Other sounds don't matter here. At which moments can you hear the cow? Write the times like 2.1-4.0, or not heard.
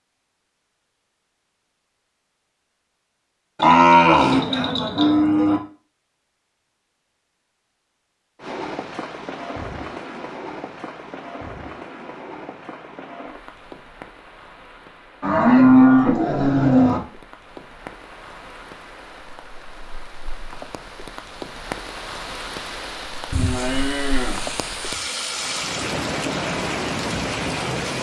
3.6-5.6, 15.2-17.0, 23.3-25.2.